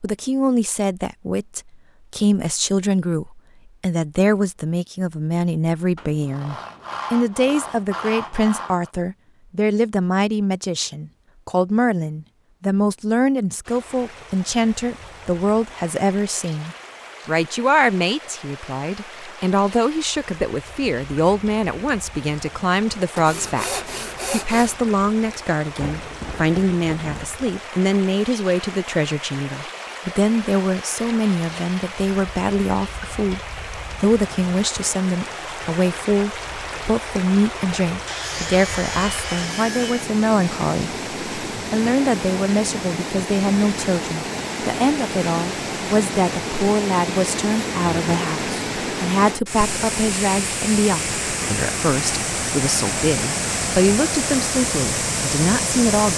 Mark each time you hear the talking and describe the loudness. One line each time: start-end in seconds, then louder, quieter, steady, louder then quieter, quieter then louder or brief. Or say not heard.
0.0-56.1 steady.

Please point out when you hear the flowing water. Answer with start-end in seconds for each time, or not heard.
13.7-56.1.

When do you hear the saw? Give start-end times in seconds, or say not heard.
6.0-8.9, 23.1-24.8, 38.0-40.1.